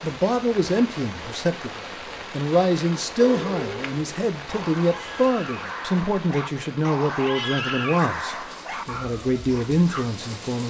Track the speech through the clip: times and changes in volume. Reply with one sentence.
The speech can be heard from 0.0 to 10.6 s, at a steady volume.